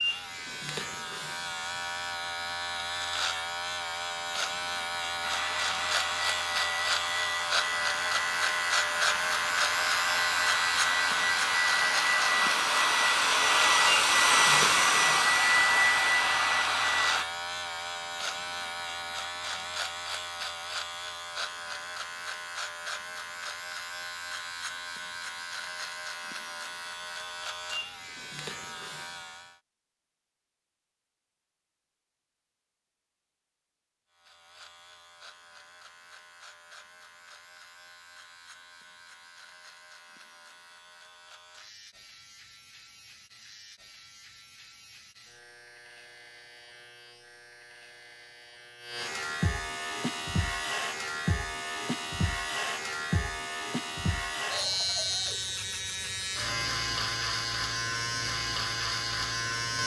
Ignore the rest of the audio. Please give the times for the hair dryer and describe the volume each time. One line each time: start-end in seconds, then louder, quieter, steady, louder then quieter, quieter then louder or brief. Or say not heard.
5.2-17.2 louder.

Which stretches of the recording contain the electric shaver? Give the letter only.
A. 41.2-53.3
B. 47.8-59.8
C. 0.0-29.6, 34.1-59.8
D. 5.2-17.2
C.